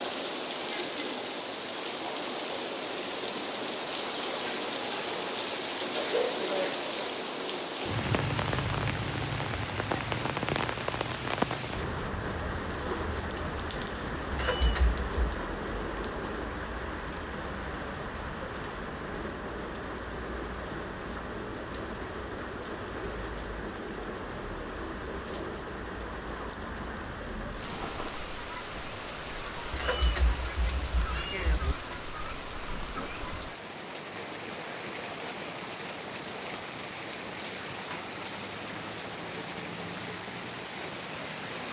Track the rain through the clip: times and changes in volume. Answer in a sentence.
You can hear the rain from 0.0 to 41.6 s, getting quieter.